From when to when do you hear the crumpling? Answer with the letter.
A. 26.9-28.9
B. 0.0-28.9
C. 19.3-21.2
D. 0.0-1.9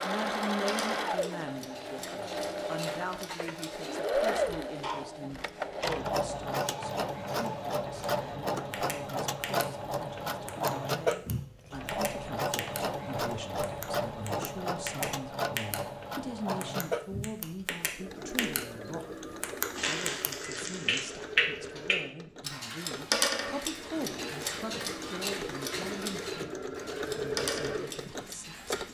C.